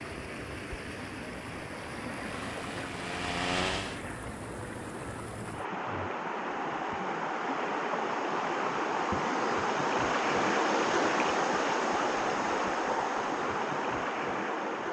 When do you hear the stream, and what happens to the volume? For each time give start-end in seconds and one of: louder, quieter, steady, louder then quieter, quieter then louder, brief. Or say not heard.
0.0-14.8 louder.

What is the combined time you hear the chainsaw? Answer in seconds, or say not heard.
2 s.